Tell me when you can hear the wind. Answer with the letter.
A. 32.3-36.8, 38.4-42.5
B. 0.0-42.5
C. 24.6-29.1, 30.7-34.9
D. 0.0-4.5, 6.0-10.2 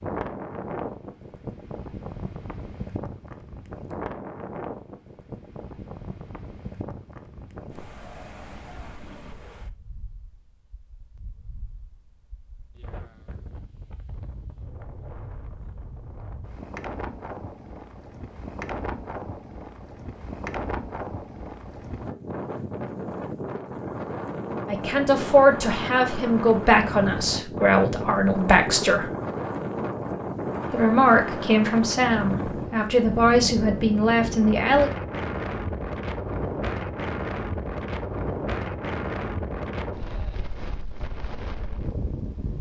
B.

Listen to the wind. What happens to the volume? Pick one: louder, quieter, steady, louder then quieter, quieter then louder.
quieter then louder.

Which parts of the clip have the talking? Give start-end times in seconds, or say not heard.
24.6-29.1, 30.7-34.9.